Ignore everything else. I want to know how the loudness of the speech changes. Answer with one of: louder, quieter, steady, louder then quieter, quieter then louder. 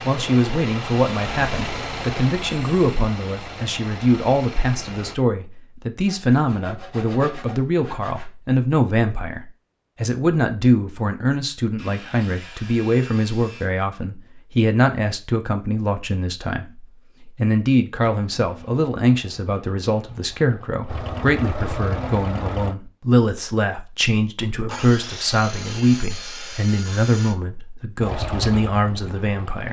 steady.